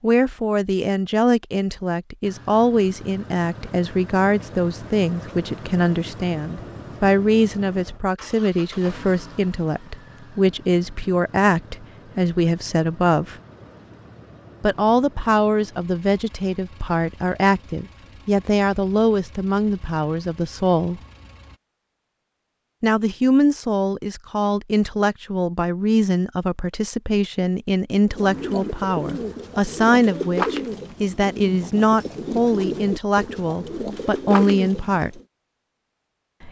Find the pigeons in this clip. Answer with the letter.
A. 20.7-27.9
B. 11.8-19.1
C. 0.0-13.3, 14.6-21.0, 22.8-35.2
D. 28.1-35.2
D.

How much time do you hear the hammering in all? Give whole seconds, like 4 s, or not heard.
not heard.